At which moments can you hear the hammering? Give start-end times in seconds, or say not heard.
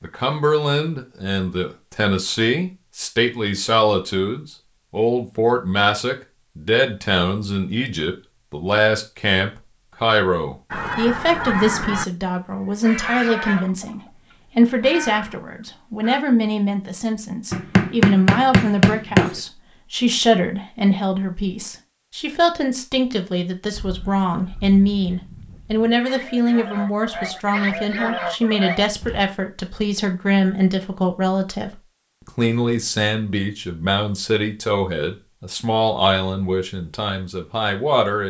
17.5-19.4.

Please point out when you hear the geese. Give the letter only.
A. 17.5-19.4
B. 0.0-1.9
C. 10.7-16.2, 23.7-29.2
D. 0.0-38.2
C.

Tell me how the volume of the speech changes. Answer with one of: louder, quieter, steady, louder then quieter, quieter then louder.
steady.